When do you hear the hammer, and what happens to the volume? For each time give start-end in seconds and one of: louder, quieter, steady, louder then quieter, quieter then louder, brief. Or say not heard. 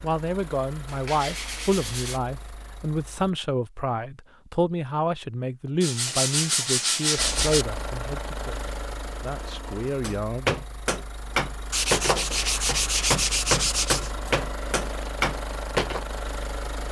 10.0-16.1 steady.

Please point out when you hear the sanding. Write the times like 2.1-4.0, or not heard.
0.8-2.2, 5.8-7.7, 11.7-14.1.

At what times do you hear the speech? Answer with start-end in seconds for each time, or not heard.
0.0-10.6.